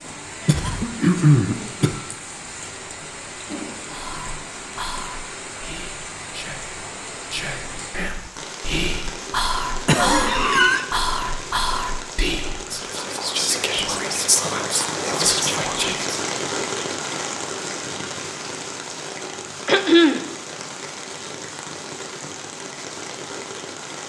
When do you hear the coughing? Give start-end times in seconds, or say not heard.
0.1-2.0, 9.8-10.8, 19.6-20.2.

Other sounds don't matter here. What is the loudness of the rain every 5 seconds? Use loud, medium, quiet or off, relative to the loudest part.
medium, medium, loud, loud, medium.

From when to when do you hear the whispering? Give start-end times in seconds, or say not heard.
3.9-16.1.